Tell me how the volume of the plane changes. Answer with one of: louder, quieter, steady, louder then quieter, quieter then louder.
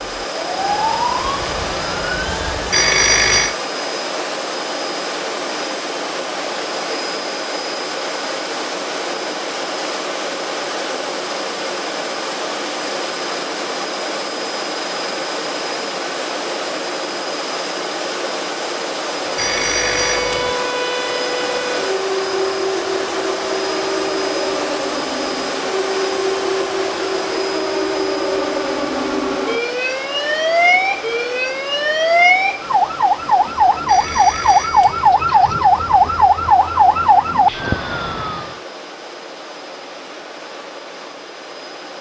quieter.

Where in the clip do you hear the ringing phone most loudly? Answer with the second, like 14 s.
3 s.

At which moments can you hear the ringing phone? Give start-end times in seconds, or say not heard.
2.7-3.5, 19.4-20.6, 33.9-35.1.